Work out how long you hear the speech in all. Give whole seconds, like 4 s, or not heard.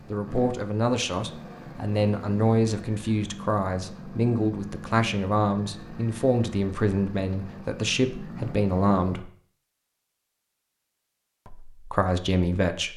11 s.